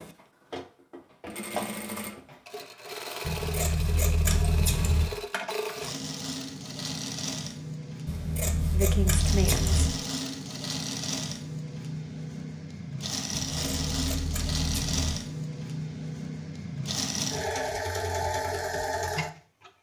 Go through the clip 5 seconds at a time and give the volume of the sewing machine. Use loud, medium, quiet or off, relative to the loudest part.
medium, loud, loud, loud.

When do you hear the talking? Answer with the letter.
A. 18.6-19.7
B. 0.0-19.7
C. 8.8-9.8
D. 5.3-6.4
C.